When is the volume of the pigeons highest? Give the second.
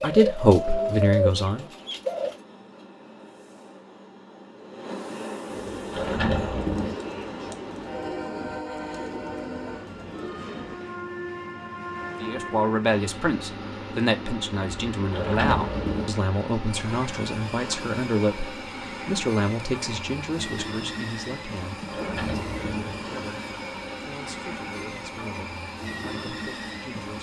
1 s.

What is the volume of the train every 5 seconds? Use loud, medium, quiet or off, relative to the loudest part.
medium, loud, loud, loud, loud, loud.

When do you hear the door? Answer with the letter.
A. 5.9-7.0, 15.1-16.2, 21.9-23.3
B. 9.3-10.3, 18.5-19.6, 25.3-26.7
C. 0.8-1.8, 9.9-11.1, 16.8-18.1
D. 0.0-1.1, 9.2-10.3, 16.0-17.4
A.